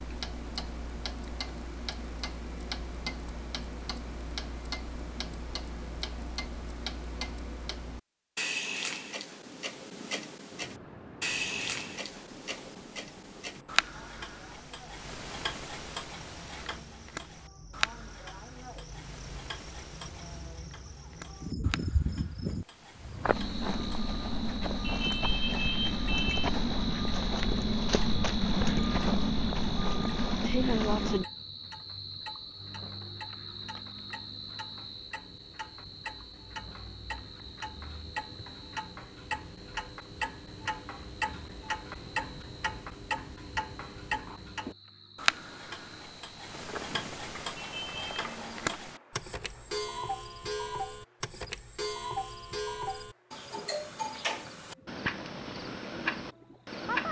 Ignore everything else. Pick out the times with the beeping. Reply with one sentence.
The beeping can be heard from 24.8 to 26.5 s and from 47.5 to 48.2 s.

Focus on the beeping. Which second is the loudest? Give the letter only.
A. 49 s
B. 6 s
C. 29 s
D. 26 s
D.